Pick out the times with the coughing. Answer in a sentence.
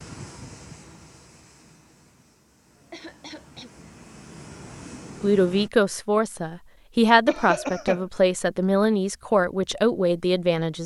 The coughing can be heard from 2.8 to 3.7 s and from 7.2 to 8.1 s.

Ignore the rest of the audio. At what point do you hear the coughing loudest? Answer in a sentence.
The loudest moment of the coughing is at 8 seconds.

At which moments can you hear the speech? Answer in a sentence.
You can hear the speech from 5.2 to 10.8 s.